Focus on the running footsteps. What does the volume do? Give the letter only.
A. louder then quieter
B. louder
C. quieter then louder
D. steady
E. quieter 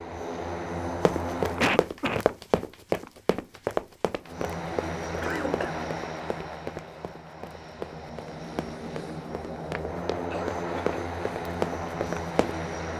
C.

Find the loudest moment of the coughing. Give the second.
2 s.